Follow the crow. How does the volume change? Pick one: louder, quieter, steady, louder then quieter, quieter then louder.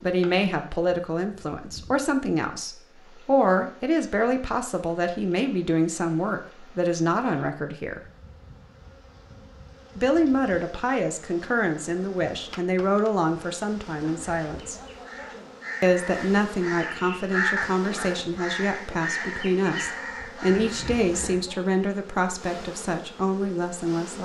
louder then quieter.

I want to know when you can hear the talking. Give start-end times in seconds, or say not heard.
0.0-8.0, 9.9-14.8, 15.8-24.2.